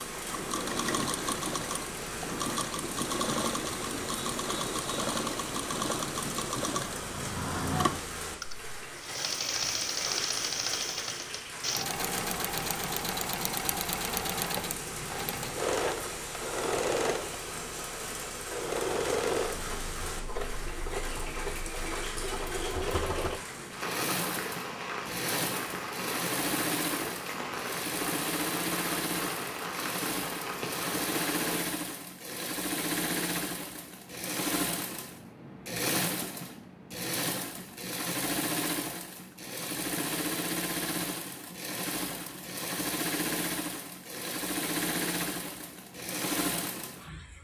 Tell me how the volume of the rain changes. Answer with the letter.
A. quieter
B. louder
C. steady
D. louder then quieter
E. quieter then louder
C.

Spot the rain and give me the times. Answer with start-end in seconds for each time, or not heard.
0.0-31.6.